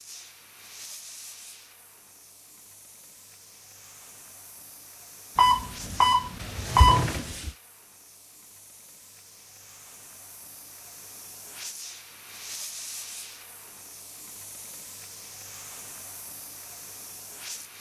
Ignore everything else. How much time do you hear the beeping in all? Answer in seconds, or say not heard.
2 s.